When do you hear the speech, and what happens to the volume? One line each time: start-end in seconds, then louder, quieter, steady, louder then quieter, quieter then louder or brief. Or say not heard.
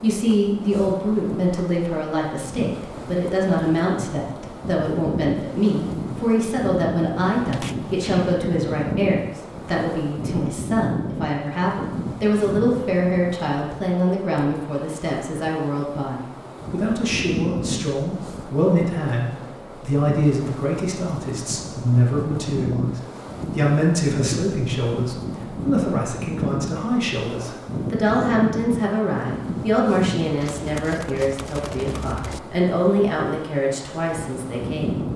0.0-35.0 steady.